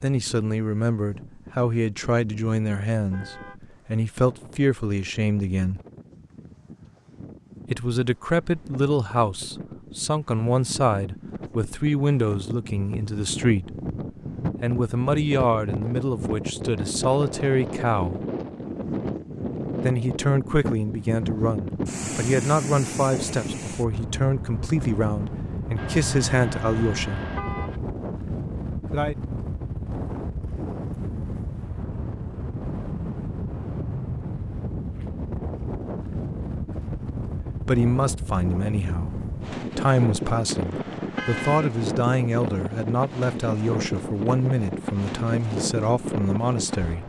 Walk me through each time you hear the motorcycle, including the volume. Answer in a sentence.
The motorcycle can't be heard in this clip.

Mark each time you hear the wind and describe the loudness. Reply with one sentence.
The wind can be heard from 0.1 to 47.0 s, getting louder.